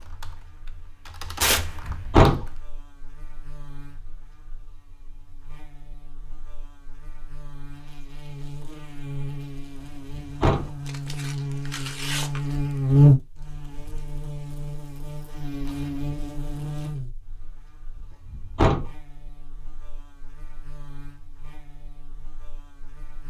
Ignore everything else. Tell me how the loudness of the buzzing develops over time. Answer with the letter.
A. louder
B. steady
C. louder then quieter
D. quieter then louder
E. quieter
C.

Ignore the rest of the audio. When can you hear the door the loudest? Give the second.
2 s.